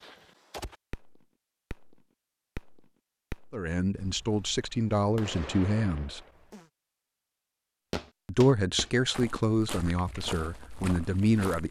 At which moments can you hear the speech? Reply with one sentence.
You can hear the speech from 3.5 to 6.2 s and from 8.2 to 11.6 s.